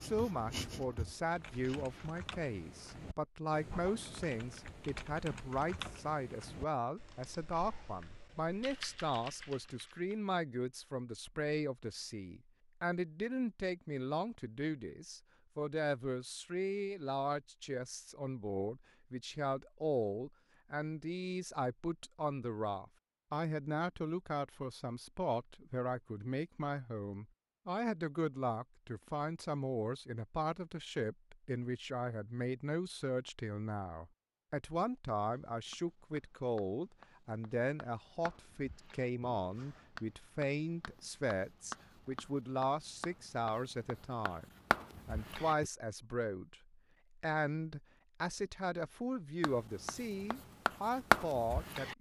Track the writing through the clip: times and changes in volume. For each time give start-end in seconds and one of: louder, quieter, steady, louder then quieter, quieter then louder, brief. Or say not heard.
0.0-2.1 brief
35.5-45.7 louder
49.4-51.9 brief.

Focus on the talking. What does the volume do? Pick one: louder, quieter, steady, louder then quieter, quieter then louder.
steady.